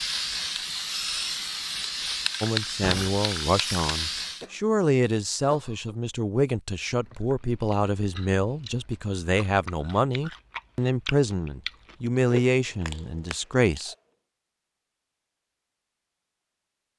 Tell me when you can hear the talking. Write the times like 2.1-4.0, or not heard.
2.4-13.9.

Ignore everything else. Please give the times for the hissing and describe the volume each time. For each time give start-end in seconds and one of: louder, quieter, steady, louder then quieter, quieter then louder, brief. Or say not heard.
0.0-4.5 steady.